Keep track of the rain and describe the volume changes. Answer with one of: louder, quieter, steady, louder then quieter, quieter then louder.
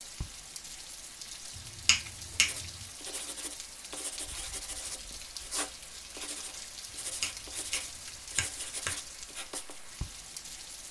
steady.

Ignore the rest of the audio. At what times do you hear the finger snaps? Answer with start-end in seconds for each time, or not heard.
1.6-2.9, 7.2-8.9.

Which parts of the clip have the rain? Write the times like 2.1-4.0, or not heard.
0.0-10.8.